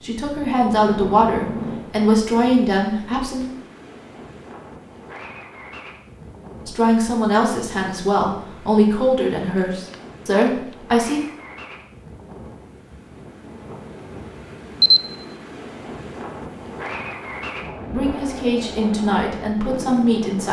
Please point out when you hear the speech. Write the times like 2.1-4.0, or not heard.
0.0-3.5, 6.7-11.2, 17.9-20.4.